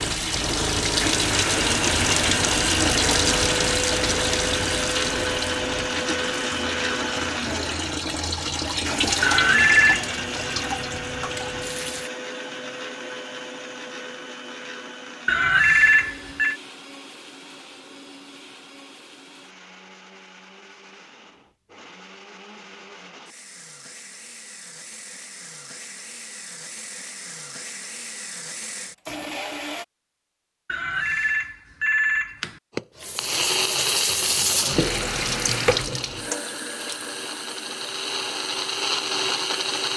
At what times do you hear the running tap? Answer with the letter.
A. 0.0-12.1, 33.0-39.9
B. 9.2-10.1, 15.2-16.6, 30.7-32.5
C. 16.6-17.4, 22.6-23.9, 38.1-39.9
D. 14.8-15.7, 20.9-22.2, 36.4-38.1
A.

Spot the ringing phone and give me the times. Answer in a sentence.
The ringing phone can be heard from 9.2 to 10.1 s, from 15.2 to 16.6 s and from 30.7 to 32.5 s.